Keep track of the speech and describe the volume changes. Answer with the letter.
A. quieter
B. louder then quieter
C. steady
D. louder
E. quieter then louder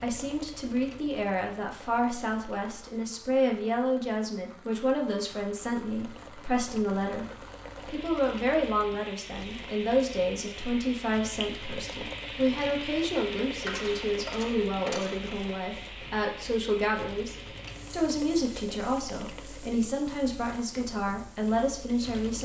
C.